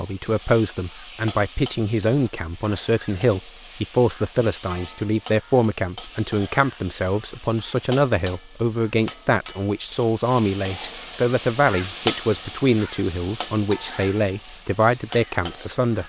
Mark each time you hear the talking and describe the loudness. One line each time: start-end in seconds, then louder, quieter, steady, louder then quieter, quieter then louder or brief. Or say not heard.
0.0-16.0 steady.